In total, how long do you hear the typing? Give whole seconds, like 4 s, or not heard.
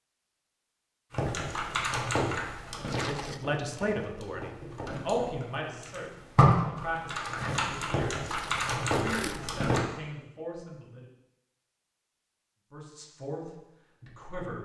9 s.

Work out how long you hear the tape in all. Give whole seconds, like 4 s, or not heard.
2 s.